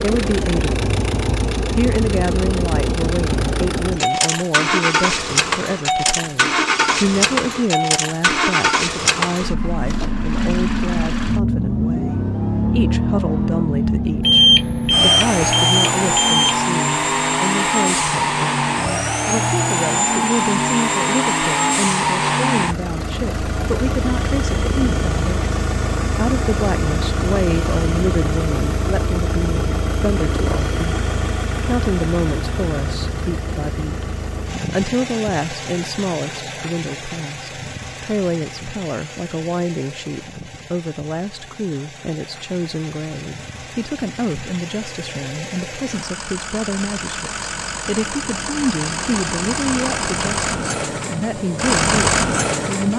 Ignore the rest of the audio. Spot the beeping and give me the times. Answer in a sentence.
You can hear the beeping from 14.2 to 16.6 s.